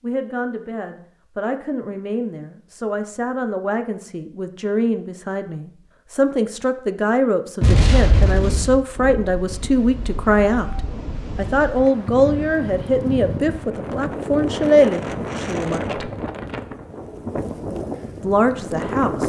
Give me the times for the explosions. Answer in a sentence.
You can hear the explosions from 7.6 to 8.8 s.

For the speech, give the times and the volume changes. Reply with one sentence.
You can hear the speech from 0.0 to 16.1 s, getting louder; and briefly from 18.2 to 19.2 s.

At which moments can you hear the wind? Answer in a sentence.
The wind can be heard from 8.2 to 19.2 s.